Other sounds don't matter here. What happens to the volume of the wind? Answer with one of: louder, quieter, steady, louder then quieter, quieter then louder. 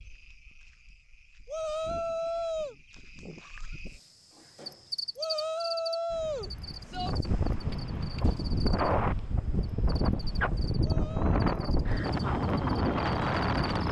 louder.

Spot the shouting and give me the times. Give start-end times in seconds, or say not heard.
1.4-2.8, 5.2-7.2, 10.8-11.7.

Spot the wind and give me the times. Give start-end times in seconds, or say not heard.
6.1-13.8.